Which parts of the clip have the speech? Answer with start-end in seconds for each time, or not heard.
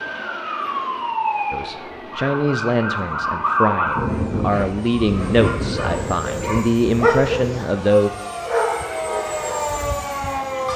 1.5-8.1.